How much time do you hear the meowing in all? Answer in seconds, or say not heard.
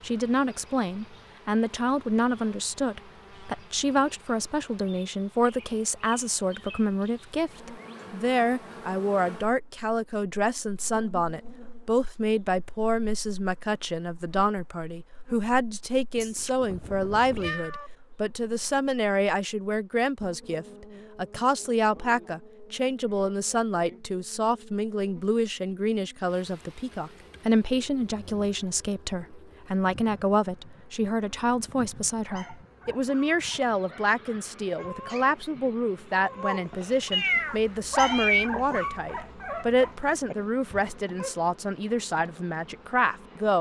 3 s.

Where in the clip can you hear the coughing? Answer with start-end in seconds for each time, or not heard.
not heard.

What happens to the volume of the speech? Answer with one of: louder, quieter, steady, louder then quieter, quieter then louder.
steady.